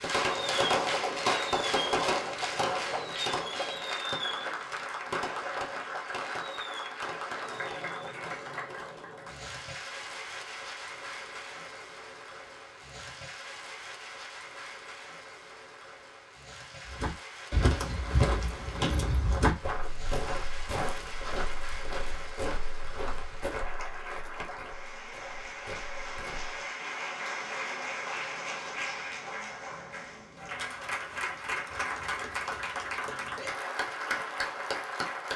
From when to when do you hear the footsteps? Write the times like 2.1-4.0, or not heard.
16.9-26.6.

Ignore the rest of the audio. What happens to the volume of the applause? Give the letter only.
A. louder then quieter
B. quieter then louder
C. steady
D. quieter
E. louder
B.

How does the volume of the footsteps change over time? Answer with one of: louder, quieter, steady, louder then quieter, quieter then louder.
quieter.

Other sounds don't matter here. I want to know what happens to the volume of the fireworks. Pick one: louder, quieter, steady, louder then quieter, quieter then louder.
quieter.